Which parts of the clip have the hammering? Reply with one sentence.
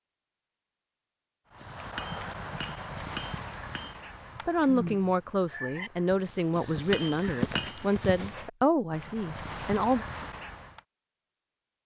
The hammering can be heard from 1.6 to 4.0 s and from 6.5 to 8.0 s.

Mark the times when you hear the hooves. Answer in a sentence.
The hooves can be heard from 1.5 to 10.8 s.